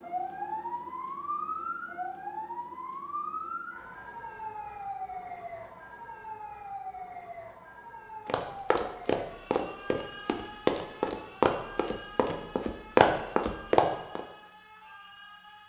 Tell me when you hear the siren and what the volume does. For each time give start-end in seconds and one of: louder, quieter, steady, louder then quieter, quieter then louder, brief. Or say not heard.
0.0-15.6 quieter.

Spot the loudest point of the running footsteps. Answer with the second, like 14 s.
13 s.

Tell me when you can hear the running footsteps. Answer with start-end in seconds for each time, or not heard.
8.2-14.2.